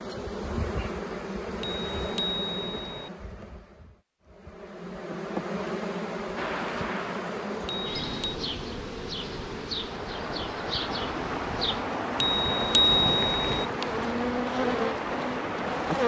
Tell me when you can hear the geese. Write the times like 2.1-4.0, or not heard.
not heard.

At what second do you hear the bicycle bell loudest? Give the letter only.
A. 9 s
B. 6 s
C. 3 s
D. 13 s
D.